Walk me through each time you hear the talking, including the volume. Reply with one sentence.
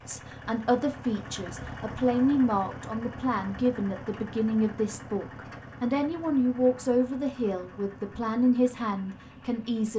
The talking can be heard from 0.1 to 9.9 s, at a steady volume.